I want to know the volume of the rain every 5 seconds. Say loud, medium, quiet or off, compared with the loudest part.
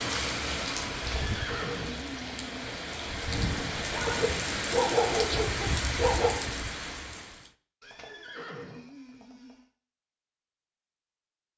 loud, loud, off.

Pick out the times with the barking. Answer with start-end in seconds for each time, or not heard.
3.2-6.3.